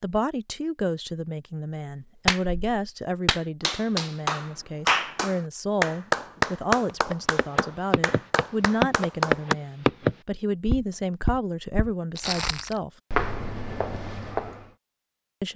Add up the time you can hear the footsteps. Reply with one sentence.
The footsteps can be heard for 8 seconds in total.